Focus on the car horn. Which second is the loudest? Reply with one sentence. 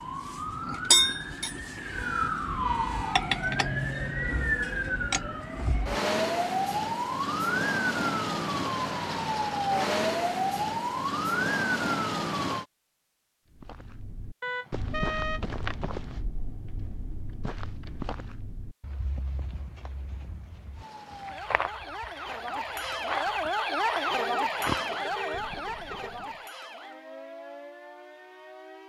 The volume of the car horn peaks at 15 seconds.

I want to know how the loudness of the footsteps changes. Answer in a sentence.
The loudness of the footsteps goes down, then up.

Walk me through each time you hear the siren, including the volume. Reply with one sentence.
The siren can be heard from 0.0 to 12.7 s, at a steady volume; and from 20.8 to 28.8 s, getting louder then quieter.